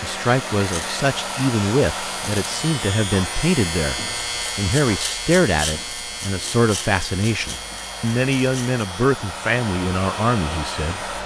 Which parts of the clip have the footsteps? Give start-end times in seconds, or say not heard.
not heard.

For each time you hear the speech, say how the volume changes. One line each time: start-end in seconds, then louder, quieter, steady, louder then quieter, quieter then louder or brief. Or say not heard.
0.0-11.1 steady.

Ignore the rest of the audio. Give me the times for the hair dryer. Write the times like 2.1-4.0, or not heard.
0.0-11.2.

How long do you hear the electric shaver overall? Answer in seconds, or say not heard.
11 s.